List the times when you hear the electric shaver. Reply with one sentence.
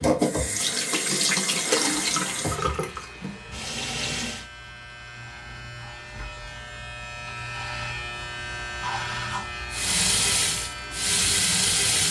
You can hear the electric shaver from 2.0 to 12.0 s.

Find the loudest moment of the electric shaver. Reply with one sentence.
The loudest moment of the electric shaver is at 9 seconds.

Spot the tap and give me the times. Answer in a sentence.
You can hear the tap from 0.0 to 4.5 s and from 9.7 to 12.0 s.